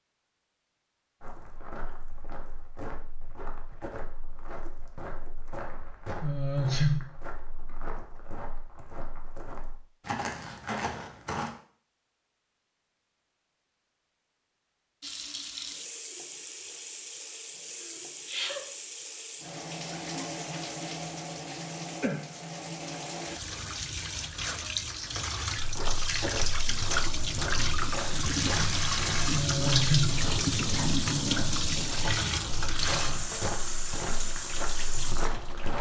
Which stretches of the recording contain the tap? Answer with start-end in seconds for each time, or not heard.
15.0-35.7.